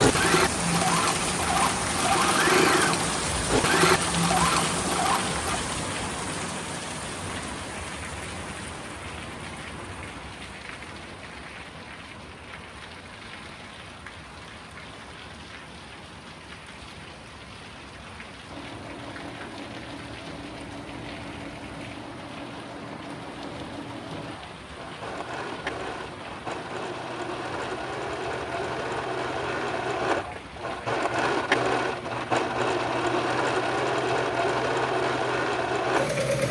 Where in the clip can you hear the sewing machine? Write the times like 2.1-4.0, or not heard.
0.0-5.6, 18.4-36.4.